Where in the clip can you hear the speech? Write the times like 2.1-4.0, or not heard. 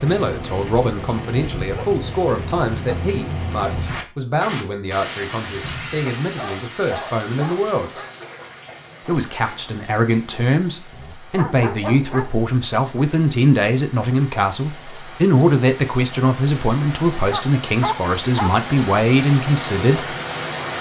0.0-8.0, 9.1-20.1.